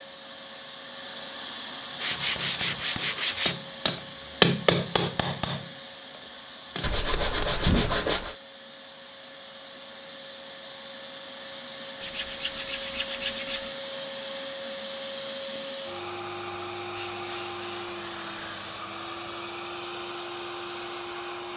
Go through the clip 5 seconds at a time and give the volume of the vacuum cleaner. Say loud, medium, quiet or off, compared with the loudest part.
loud, medium, loud, loud, loud.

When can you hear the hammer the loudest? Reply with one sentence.
The volume of the hammer peaks at 5 seconds.